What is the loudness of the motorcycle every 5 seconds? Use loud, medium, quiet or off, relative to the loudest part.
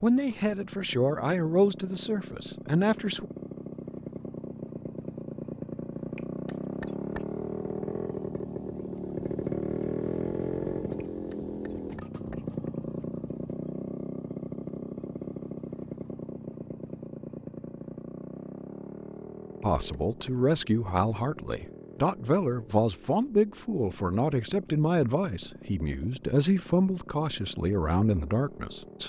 medium, loud, loud, medium, quiet, quiet.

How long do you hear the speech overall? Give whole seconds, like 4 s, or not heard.
13 s.